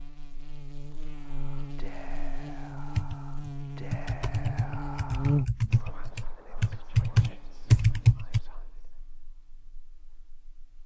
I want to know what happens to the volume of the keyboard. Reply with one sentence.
The volume of the keyboard goes up.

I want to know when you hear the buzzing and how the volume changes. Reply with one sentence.
You can hear the buzzing from 0.0 to 10.8 s, getting louder then quieter.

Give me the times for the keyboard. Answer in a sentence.
The keyboard can be heard from 3.0 to 8.4 s.